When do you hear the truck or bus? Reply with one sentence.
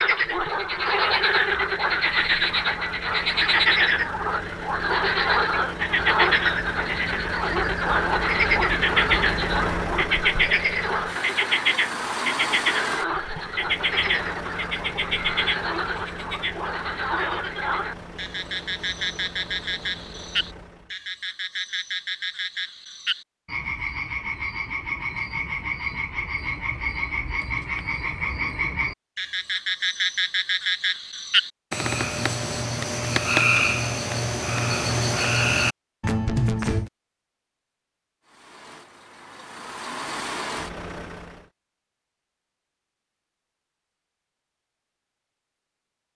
The truck or bus can be heard from 0.0 to 20.9 s and from 38.2 to 41.5 s.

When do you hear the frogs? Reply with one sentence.
The frogs can be heard from 0.0 to 36.9 s.